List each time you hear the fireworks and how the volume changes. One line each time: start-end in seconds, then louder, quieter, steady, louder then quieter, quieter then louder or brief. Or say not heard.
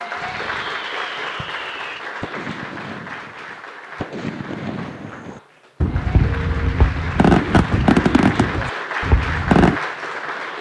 0.1-9.8 louder.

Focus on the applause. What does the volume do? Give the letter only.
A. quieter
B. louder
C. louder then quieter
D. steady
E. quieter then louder
E.